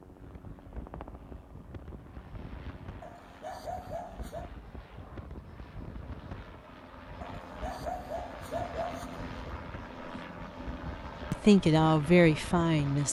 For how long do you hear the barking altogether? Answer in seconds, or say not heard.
4 s.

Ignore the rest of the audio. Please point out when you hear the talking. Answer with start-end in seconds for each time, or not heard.
11.3-13.0.